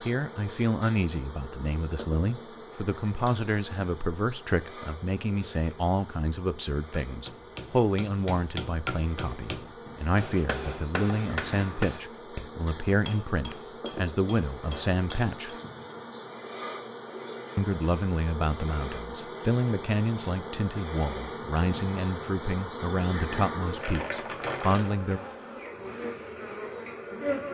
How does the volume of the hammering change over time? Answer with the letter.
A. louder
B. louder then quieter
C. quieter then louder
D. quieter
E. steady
D.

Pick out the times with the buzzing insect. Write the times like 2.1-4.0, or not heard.
0.0-27.5.